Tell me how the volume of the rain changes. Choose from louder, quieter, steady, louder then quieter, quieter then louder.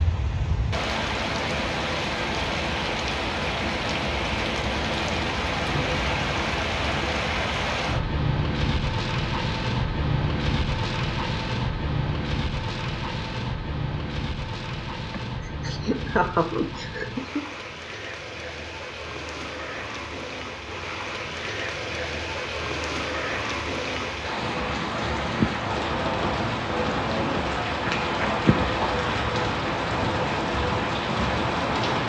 quieter then louder.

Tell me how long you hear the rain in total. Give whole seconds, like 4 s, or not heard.
32 s.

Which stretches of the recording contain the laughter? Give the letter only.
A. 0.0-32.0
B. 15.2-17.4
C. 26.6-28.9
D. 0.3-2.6
B.